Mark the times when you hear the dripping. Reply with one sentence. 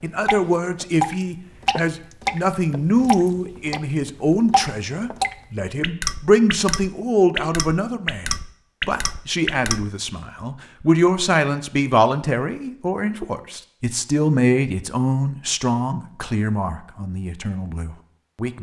The dripping can be heard from 0.2 to 9.8 s.